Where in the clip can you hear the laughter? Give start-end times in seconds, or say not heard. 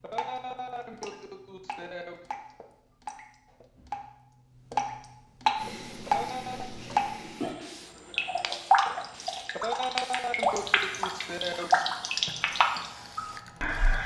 0.0-2.2, 6.0-6.7, 9.6-11.9.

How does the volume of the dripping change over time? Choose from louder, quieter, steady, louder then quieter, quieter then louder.
louder.